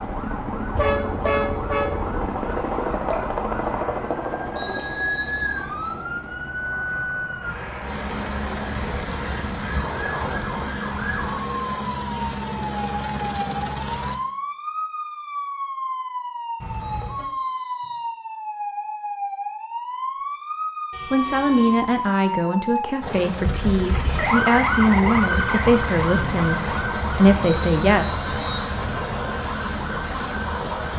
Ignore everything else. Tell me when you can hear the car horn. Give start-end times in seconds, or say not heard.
0.8-2.1, 16.6-17.2, 20.9-22.0.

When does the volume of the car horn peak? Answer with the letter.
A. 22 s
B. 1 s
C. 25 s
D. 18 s
B.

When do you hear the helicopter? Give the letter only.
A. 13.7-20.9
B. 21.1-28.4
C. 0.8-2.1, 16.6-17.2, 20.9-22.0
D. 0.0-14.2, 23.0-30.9
D.